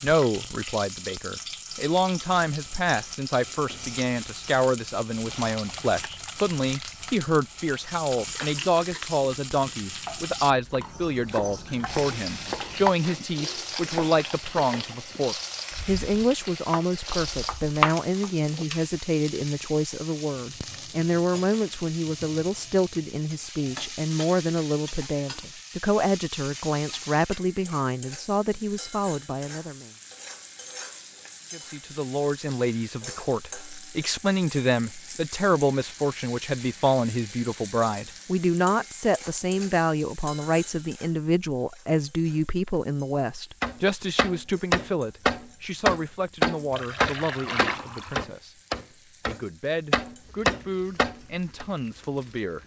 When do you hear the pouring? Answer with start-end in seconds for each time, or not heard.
5.2-7.0, 46.7-48.2.